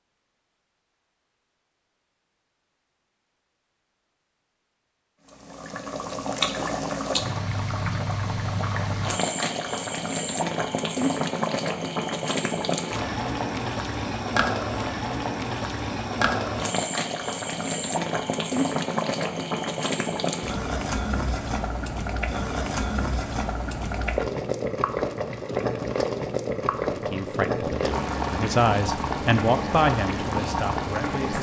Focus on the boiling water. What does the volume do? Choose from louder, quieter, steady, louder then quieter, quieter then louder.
steady.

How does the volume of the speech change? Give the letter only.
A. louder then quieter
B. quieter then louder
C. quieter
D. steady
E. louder
A.